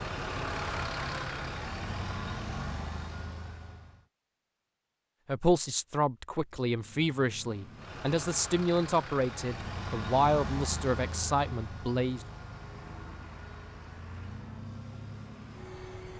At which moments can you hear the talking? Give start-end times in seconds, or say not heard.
5.2-12.2.